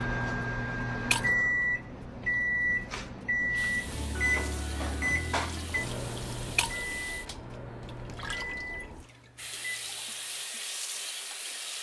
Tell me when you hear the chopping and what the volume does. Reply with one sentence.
You can't hear the chopping here.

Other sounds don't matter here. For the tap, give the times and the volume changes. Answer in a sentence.
You can hear the tap from 3.5 to 11.7 s, getting louder.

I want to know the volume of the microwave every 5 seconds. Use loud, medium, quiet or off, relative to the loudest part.
loud, medium, off.